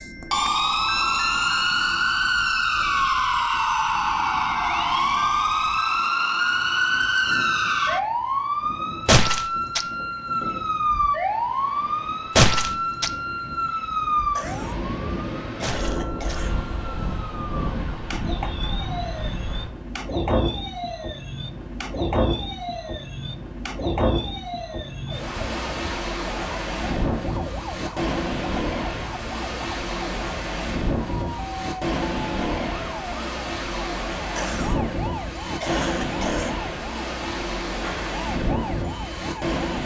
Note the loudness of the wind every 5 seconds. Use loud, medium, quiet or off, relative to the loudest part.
quiet, quiet, medium, loud, loud, loud, loud, loud.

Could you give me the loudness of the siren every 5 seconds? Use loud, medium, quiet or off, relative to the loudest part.
loud, loud, loud, quiet, quiet, quiet, quiet, quiet.